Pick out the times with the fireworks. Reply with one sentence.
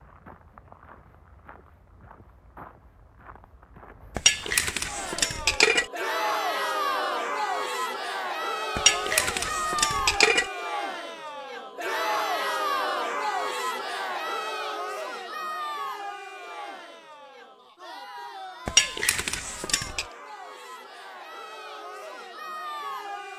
You can't hear the fireworks here.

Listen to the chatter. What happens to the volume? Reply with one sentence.
The loudness of the chatter goes down.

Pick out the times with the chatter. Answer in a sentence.
The chatter can be heard from 4.8 to 23.3 s.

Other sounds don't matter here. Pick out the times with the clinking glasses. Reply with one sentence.
The clinking glasses can be heard from 4.2 to 5.8 s, from 8.8 to 10.4 s and from 18.6 to 20.1 s.